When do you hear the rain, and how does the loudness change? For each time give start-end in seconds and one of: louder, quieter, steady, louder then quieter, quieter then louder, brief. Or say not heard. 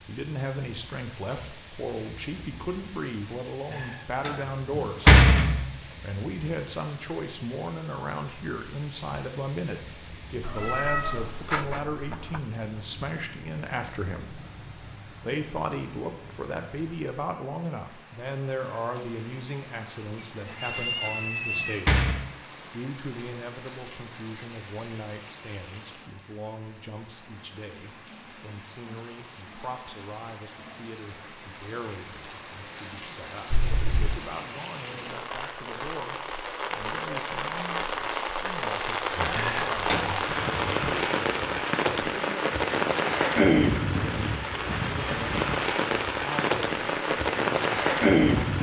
0.0-48.5 louder.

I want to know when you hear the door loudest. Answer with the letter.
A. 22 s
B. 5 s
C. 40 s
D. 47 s
B.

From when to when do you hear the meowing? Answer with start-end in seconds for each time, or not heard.
10.4-12.4, 20.1-21.8, 33.5-34.2.